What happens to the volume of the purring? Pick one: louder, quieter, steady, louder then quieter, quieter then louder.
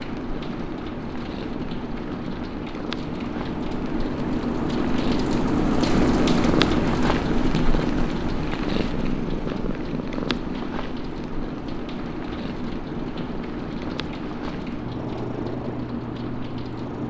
louder then quieter.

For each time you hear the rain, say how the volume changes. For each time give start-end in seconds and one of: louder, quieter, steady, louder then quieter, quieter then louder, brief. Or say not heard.
0.0-17.0 louder then quieter.